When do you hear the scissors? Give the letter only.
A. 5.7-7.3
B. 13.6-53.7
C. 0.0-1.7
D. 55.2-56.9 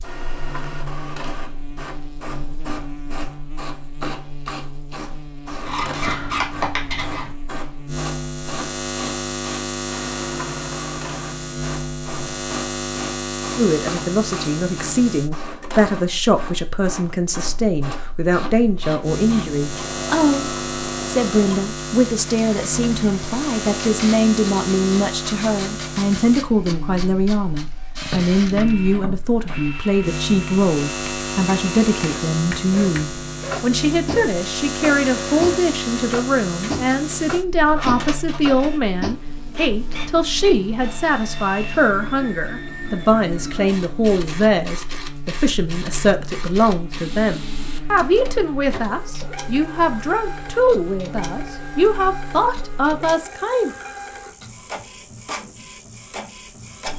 A.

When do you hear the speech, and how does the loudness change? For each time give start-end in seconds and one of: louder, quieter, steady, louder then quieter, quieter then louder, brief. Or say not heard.
13.6-53.7 steady.